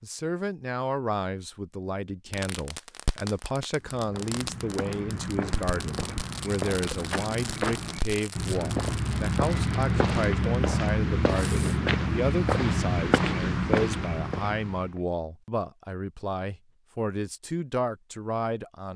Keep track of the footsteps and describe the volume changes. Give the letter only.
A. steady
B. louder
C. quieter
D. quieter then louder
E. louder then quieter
B.